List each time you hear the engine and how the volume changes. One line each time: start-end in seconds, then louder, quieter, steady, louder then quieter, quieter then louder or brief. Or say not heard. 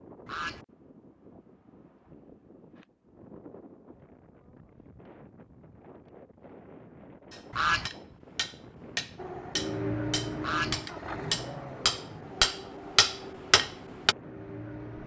9.2-15.0 quieter.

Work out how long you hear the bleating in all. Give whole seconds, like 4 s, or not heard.
not heard.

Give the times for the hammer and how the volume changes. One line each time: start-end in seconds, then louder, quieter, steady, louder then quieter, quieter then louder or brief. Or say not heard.
7.3-14.2 louder.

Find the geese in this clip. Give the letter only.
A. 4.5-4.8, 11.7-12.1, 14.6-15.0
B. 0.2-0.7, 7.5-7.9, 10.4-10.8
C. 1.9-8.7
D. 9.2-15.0
B.